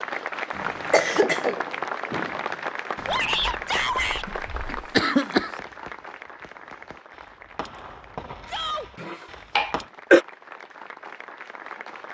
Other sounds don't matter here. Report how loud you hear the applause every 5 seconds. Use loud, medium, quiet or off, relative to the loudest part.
loud, quiet, medium.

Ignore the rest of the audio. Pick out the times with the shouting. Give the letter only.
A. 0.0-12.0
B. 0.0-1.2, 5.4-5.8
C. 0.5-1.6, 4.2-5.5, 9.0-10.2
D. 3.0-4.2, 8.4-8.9
D.